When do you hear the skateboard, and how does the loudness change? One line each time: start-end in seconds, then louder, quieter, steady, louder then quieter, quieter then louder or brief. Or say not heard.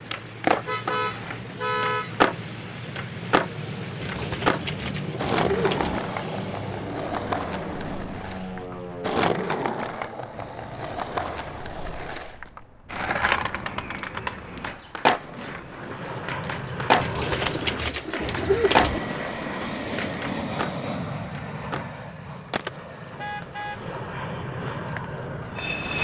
0.1-25.8 quieter.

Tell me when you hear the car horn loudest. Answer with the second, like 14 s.
2 s.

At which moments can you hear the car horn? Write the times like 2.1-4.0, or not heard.
0.7-2.1, 23.1-23.9.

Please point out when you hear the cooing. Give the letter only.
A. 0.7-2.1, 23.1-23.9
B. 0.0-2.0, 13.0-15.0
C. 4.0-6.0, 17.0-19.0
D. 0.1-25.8
C.